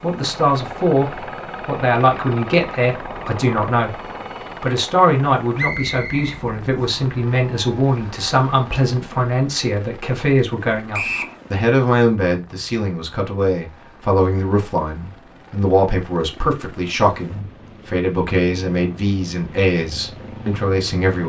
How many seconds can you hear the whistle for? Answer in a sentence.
You can hear the whistle for 2 seconds altogether.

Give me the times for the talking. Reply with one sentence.
You can hear the talking from 0.0 to 4.0 s and from 4.6 to 21.2 s.